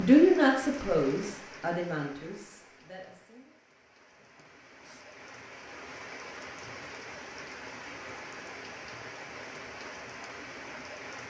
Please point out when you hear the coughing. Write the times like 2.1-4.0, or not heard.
4.2-5.0.